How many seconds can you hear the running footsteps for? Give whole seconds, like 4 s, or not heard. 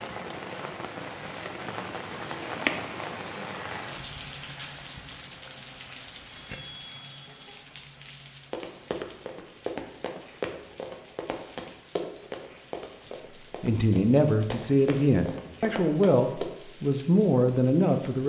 8 s.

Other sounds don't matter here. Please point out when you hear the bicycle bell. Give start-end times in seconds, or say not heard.
6.2-7.5.